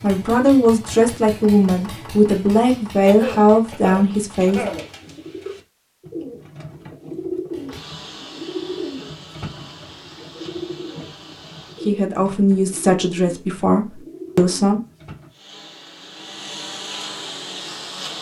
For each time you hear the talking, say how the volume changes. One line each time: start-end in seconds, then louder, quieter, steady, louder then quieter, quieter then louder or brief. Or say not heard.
0.0-4.7 steady
11.8-14.8 brief.